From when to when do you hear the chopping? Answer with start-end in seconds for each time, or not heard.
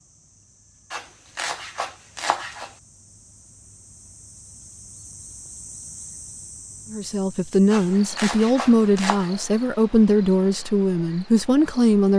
0.9-2.7, 7.7-9.3.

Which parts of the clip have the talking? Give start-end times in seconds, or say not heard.
6.9-12.1.